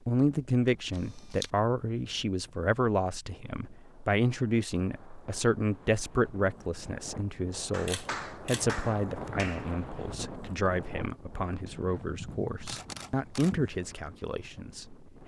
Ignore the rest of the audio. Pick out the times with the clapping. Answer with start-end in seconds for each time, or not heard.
7.7-9.7.